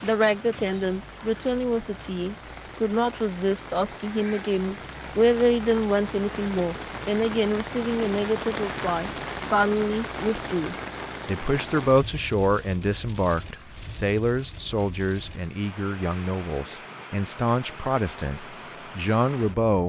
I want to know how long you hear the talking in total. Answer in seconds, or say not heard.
20 s.